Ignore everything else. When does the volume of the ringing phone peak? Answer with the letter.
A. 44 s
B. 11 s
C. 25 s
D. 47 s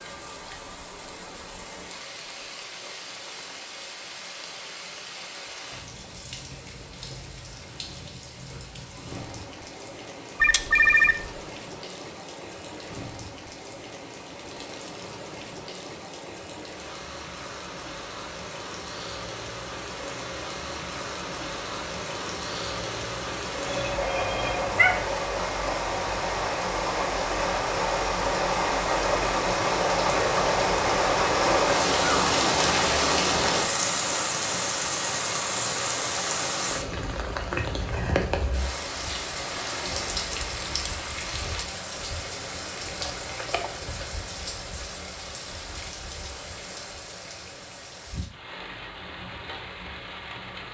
B.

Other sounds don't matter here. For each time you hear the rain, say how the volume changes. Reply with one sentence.
You can hear the rain from 0.0 to 50.6 s, getting louder then quieter.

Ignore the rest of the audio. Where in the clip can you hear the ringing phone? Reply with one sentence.
The ringing phone can be heard from 10.4 to 11.2 s, from 23.6 to 25.1 s and from 43.0 to 44.1 s.